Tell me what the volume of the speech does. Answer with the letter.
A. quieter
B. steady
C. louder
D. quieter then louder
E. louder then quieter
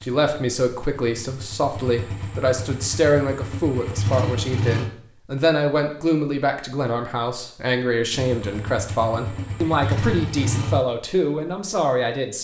B.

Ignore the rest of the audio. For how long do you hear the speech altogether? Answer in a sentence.
You can hear the speech for 12 seconds altogether.